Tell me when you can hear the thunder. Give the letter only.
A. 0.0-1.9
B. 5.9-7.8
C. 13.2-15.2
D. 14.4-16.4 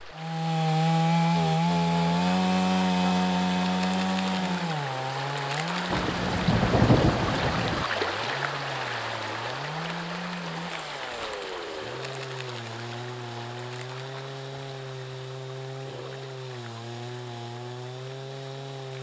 B.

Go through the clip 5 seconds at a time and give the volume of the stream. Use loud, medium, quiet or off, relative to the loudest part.
medium, loud, medium, quiet.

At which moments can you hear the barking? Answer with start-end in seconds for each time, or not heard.
not heard.